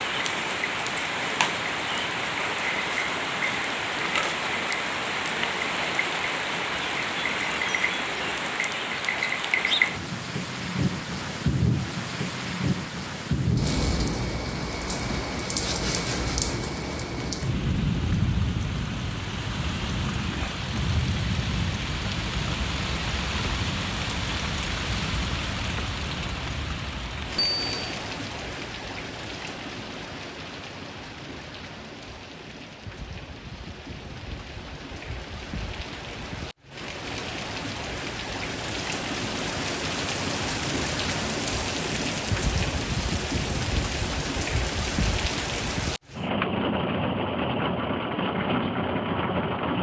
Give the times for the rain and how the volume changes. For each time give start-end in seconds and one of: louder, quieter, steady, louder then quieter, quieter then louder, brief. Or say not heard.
0.0-49.7 quieter then louder.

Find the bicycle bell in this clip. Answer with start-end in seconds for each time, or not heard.
27.4-27.9.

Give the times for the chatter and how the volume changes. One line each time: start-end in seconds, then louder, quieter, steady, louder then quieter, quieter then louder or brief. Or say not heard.
not heard.